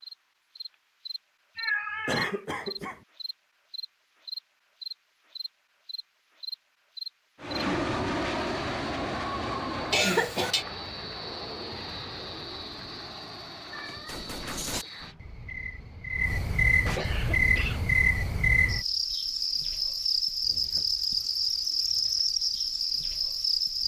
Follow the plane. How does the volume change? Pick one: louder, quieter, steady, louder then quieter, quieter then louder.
quieter.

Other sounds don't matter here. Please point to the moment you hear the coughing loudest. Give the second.
10 s.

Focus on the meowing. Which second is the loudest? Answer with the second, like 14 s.
2 s.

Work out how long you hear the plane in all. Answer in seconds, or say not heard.
7 s.